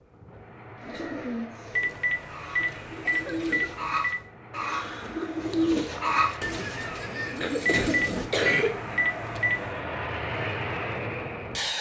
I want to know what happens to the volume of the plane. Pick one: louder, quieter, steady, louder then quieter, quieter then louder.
louder.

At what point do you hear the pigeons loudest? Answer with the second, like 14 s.
6 s.